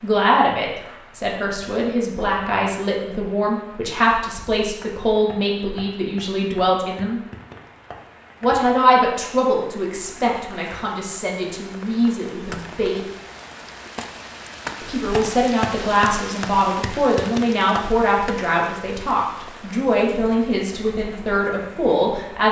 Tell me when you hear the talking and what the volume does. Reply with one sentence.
You can hear the talking from 0.0 to 7.2 s, at a steady volume; from 8.4 to 13.1 s, getting quieter then louder; and from 14.8 to 22.4 s, at a steady volume.